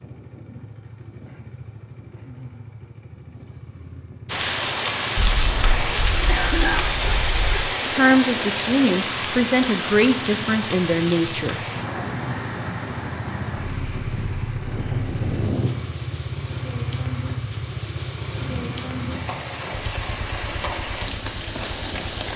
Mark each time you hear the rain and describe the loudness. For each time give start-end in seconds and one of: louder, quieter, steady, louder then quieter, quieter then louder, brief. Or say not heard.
4.2-22.3 quieter then louder.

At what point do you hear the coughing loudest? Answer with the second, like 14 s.
7 s.